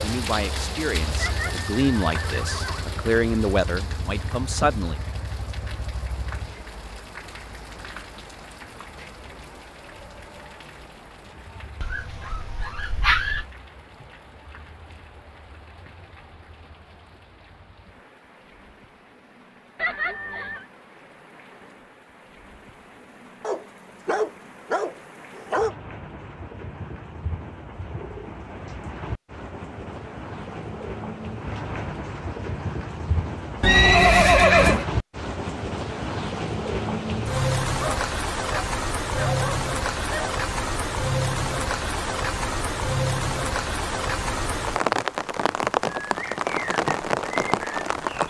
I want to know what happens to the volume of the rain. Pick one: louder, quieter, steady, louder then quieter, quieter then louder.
quieter then louder.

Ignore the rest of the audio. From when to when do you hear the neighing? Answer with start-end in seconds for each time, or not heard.
1.1-2.9, 19.8-20.6, 33.6-34.9.